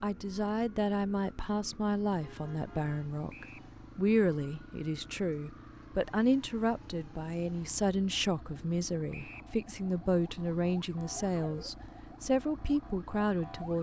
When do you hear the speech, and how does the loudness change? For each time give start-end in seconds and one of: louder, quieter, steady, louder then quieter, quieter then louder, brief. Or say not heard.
0.0-13.7 steady.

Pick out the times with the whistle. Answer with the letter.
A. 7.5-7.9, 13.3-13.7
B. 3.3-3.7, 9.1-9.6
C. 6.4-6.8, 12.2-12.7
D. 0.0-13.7
B.